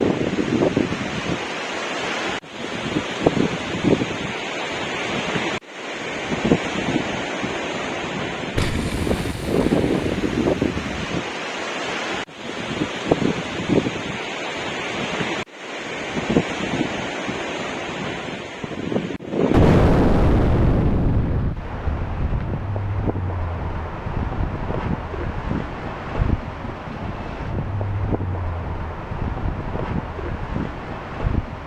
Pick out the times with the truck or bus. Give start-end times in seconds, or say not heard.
not heard.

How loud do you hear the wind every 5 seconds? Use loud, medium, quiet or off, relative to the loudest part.
loud, loud, loud, loud, medium, medium, medium.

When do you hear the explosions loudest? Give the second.
20 s.